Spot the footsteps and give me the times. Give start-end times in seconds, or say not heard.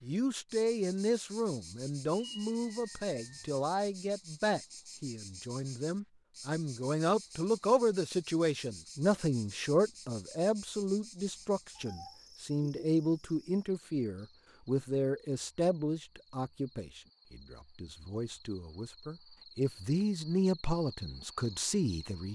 not heard.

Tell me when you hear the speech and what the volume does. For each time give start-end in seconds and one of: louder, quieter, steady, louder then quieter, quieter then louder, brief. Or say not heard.
0.0-22.3 steady.